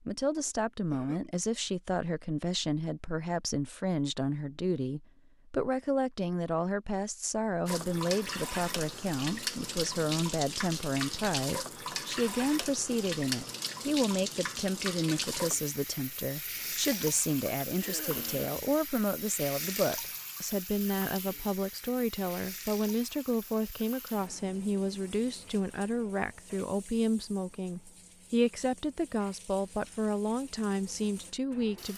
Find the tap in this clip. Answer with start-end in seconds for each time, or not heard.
7.7-31.9.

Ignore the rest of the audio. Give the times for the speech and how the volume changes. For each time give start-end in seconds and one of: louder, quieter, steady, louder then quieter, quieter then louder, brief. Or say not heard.
0.0-31.9 steady.